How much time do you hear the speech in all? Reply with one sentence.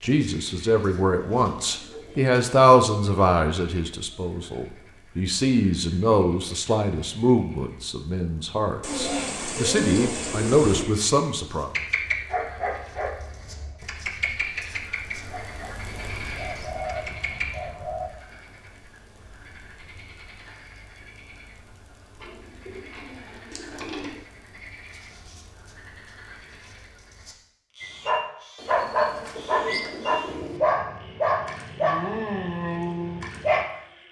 The speech can be heard for 12 seconds in total.